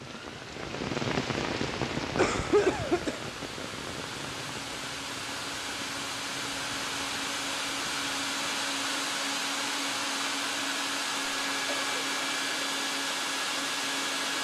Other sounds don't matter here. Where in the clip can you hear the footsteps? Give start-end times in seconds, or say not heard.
not heard.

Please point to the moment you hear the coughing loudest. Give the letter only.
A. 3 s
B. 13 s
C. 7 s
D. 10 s
A.